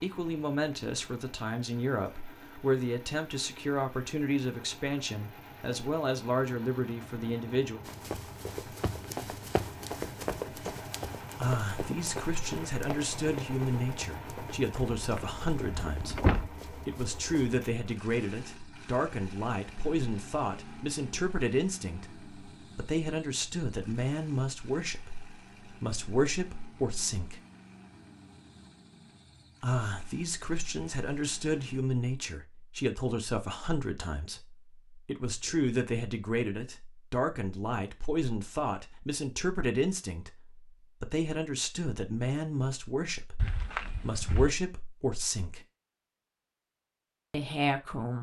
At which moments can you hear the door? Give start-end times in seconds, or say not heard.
14.9-16.5, 43.4-44.5.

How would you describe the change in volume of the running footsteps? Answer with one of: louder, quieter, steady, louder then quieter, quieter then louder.
quieter.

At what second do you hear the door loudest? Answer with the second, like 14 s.
16 s.